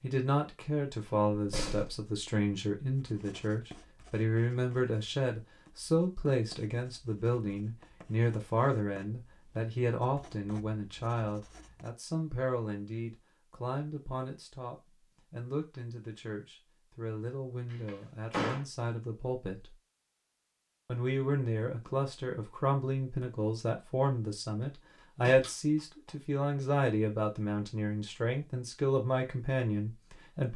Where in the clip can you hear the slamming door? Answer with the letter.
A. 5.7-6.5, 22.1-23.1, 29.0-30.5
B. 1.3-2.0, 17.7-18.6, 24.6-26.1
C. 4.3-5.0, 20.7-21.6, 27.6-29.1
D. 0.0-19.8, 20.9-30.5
B.